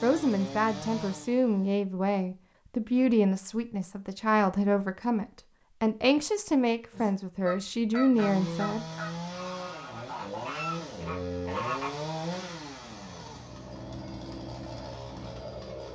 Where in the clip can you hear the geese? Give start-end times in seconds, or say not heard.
6.9-11.9.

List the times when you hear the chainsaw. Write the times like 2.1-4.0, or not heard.
0.0-1.8, 8.1-15.8.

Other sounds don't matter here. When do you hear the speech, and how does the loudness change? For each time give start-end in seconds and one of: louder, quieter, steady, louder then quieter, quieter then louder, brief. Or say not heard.
0.0-8.8 steady.